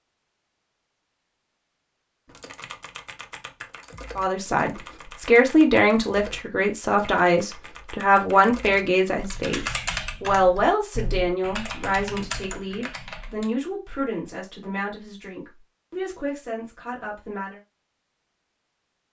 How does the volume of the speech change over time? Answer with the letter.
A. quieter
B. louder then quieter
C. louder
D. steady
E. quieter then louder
A.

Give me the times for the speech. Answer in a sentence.
You can hear the speech from 4.2 to 17.6 s.